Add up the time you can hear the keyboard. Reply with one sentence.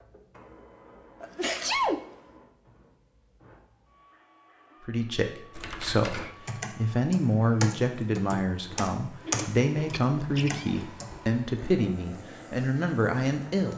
You can hear the keyboard for 6 seconds altogether.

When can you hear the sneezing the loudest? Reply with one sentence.
The loudest moment of the sneezing is at 2 seconds.